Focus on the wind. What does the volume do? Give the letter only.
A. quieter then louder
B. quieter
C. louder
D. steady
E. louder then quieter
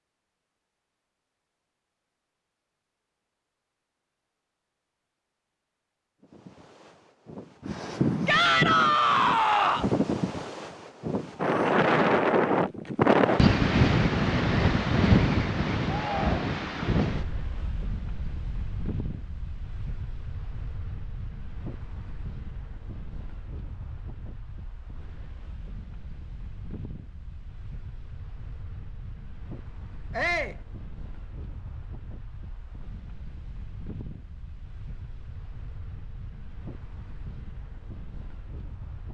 B.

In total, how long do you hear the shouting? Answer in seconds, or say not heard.
3 s.